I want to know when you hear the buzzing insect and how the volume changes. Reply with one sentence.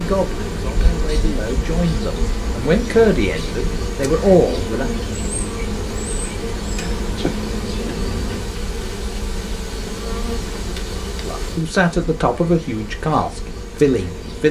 You can hear the buzzing insect from 0.0 to 14.4 s, getting quieter.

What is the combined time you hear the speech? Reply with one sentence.
The speech can be heard for 8 seconds in total.